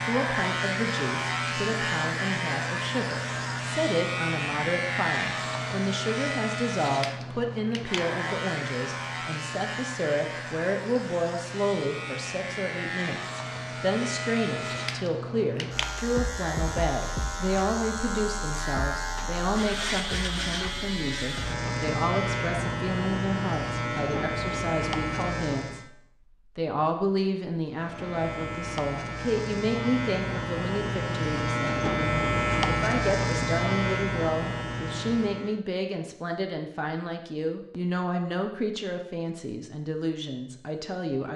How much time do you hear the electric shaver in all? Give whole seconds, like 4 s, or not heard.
34 s.